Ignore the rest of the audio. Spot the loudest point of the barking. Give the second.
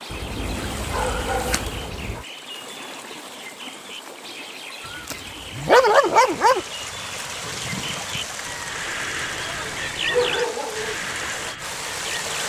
6 s.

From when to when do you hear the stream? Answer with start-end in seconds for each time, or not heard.
0.0-12.4.